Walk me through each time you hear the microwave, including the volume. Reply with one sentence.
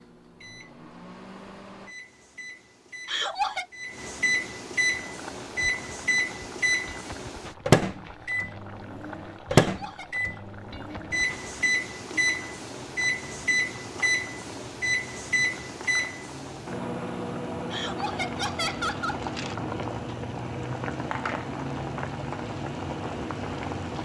The microwave can be heard from 0.0 to 24.0 s, getting louder then quieter.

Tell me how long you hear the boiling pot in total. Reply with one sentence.
The boiling pot can be heard for 19 seconds in total.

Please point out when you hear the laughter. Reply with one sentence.
You can hear the laughter from 3.0 to 3.6 s, from 9.6 to 10.1 s and from 17.7 to 19.2 s.